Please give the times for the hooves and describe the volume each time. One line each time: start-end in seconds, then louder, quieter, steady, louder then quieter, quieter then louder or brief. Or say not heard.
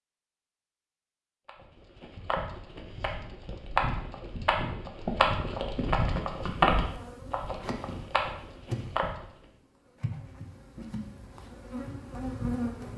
1.4-9.4 louder then quieter.